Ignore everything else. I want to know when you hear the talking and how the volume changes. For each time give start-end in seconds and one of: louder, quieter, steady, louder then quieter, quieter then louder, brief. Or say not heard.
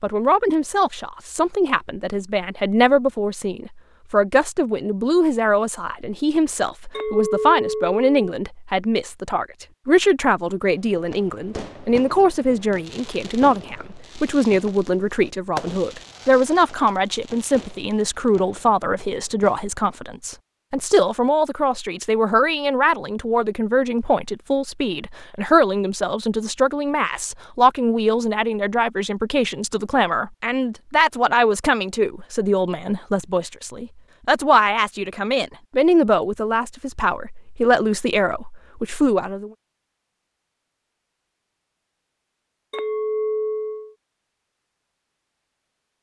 0.0-39.5 steady.